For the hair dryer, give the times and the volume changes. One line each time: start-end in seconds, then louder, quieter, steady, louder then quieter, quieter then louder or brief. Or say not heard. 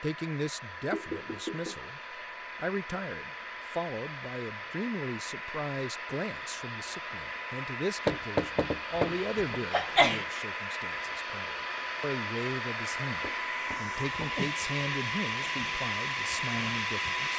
0.0-17.3 louder.